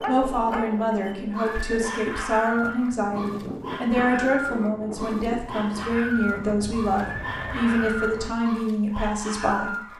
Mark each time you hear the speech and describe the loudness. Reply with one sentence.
The speech can be heard from 0.1 to 9.9 s, at a steady volume.